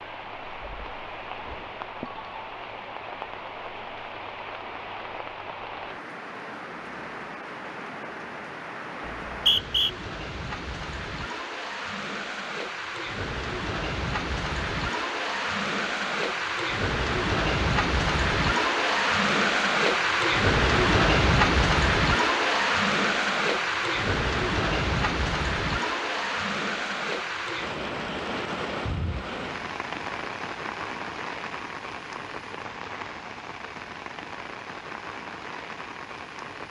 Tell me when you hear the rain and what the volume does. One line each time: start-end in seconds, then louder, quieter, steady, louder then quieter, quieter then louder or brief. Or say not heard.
0.0-36.6 louder then quieter.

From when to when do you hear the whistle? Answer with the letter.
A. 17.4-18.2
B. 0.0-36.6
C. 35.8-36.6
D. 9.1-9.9
D.